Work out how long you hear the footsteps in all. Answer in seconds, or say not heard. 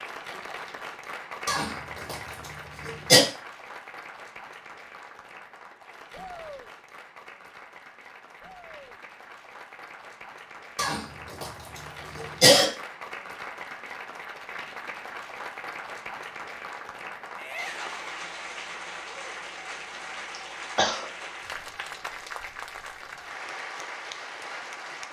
not heard.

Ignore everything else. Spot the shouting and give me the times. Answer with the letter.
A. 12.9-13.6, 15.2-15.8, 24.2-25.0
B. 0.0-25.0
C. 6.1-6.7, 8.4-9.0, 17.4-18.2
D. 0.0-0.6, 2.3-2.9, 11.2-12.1
C.